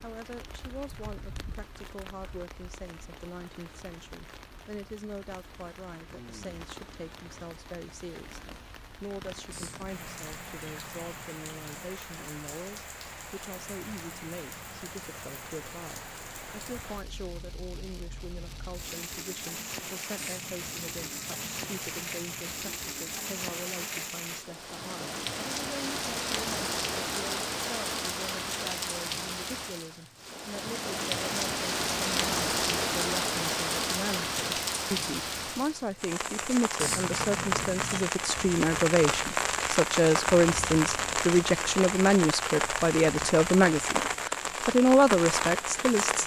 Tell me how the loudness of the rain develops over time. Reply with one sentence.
The volume of the rain goes up.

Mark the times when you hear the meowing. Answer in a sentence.
The meowing can be heard from 9.5 to 11.9 s, from 20.1 to 22.6 s and from 36.8 to 38.1 s.